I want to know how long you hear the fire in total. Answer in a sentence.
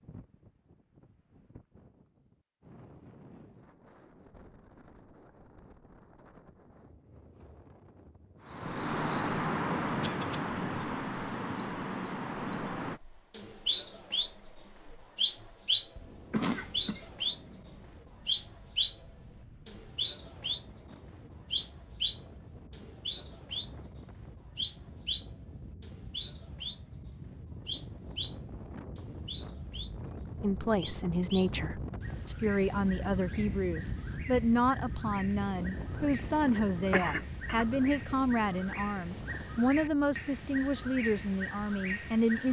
The fire can't be heard in this clip.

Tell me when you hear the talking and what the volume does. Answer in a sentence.
You can hear the talking from 30.4 to 42.4 s, at a steady volume.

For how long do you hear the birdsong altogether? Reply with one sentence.
You can hear the birdsong for 34 seconds altogether.